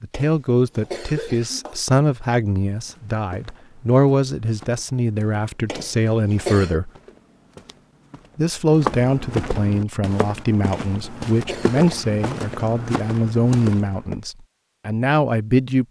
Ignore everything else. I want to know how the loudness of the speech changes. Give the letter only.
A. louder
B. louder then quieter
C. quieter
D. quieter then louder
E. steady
E.